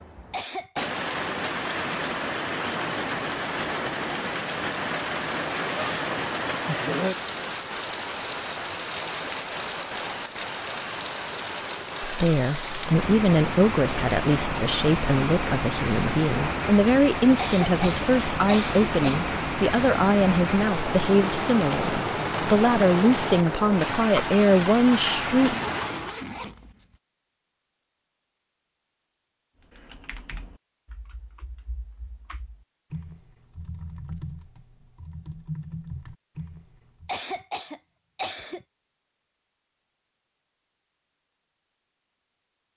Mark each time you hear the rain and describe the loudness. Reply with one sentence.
You can hear the rain from 0.0 to 26.2 s, at a steady volume.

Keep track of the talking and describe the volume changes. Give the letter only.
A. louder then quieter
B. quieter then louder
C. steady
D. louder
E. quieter
C.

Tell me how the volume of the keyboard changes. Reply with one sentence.
The loudness of the keyboard goes down, then up.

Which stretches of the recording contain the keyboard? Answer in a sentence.
The keyboard can be heard from 29.6 to 37.1 s.